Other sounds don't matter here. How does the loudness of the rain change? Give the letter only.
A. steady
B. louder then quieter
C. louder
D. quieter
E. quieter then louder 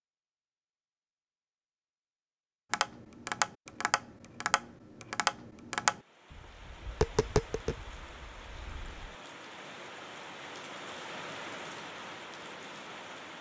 C.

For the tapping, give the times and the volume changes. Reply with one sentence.
You can hear the tapping from 2.7 to 9.1 s, getting quieter.